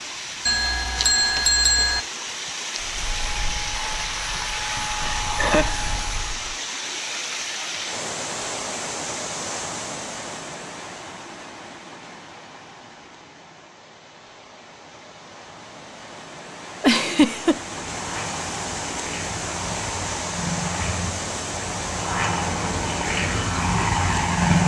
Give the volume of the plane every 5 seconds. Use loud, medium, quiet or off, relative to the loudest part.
medium, medium, off, medium, loud.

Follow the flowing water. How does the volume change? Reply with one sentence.
The loudness of the flowing water goes down, then up.